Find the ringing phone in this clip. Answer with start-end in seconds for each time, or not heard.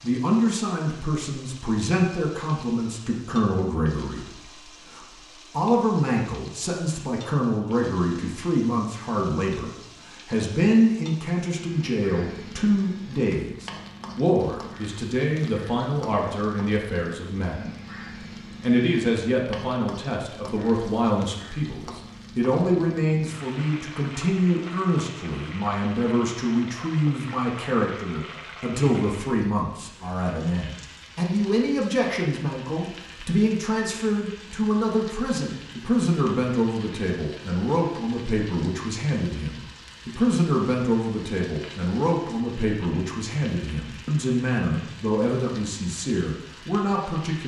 not heard.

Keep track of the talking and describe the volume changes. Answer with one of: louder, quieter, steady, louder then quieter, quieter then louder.
steady.